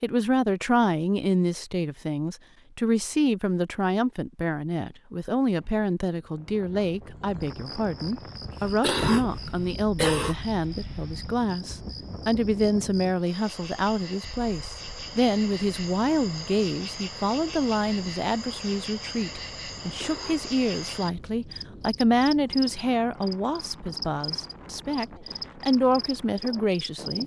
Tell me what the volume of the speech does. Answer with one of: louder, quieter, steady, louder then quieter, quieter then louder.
steady.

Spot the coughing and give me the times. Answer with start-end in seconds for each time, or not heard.
8.6-10.3, 19.8-20.5.